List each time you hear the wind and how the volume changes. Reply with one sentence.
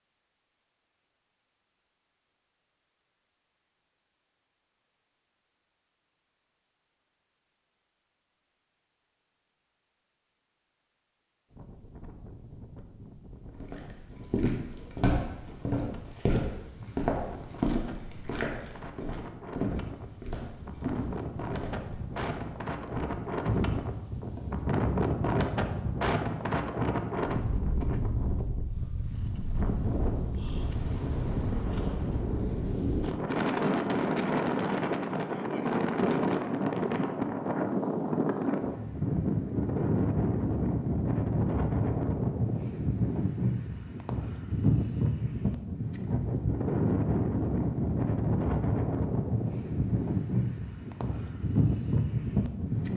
You can hear the wind from 11.5 to 52.9 s, getting louder.